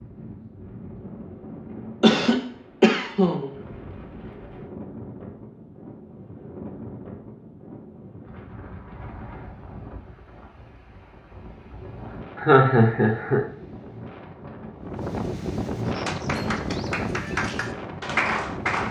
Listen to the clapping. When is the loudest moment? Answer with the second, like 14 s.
18 s.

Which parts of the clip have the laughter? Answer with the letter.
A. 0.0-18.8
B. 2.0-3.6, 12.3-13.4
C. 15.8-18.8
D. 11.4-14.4
B.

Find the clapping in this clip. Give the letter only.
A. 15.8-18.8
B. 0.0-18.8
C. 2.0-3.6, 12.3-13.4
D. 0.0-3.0
A.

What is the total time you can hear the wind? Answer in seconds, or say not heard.
19 s.